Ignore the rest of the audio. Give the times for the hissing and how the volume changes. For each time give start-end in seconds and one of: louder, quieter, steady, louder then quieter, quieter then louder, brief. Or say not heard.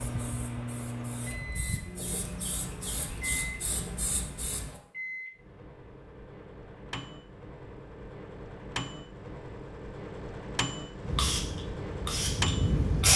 0.0-4.8 louder
11.1-13.1 brief.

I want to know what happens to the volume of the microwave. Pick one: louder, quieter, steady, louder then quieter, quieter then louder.
quieter then louder.